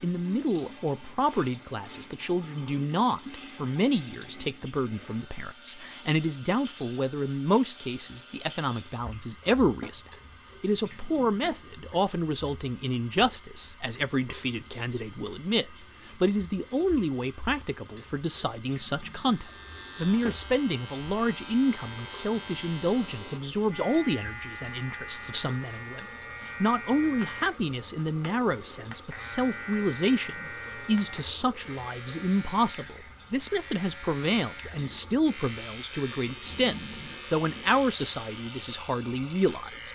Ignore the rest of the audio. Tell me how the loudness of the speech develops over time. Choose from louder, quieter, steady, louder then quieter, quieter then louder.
steady.